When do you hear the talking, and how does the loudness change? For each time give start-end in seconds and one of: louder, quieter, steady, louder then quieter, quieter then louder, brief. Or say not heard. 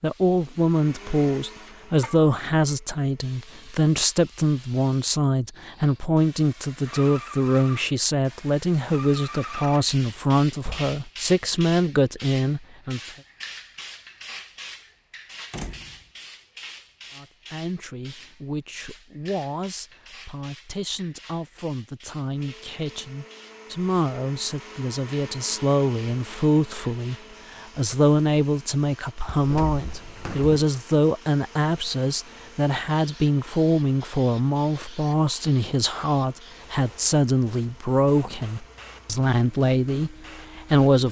0.0-13.0 steady
17.1-41.0 louder.